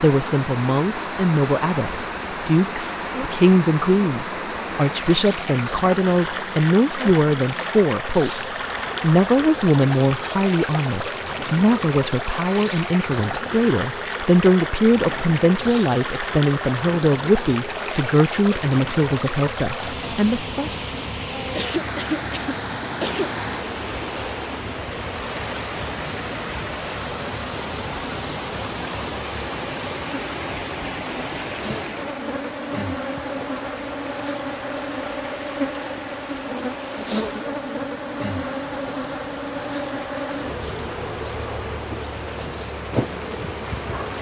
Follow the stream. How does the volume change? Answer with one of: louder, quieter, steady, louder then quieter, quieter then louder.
quieter.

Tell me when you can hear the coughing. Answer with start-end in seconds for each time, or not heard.
21.6-23.4.